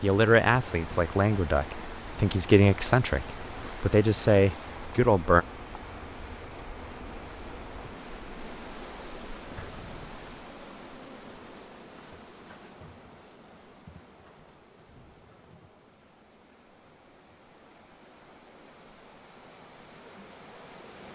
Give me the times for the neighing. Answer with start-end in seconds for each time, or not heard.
not heard.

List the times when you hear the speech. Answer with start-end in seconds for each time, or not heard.
0.0-5.5.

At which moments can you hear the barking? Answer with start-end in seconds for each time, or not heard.
not heard.